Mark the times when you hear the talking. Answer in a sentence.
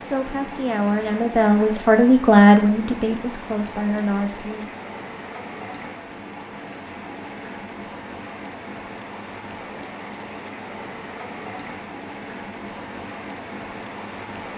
You can hear the talking from 0.0 to 4.8 s.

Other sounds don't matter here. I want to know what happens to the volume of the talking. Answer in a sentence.
The volume of the talking goes up, then down.